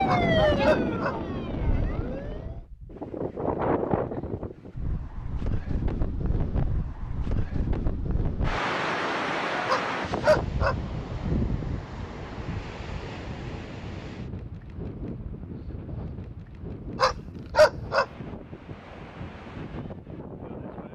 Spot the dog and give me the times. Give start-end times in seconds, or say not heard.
0.1-1.1, 9.7-10.8, 16.9-18.1.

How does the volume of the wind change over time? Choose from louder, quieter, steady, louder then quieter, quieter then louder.
quieter.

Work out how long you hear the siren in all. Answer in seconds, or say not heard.
3 s.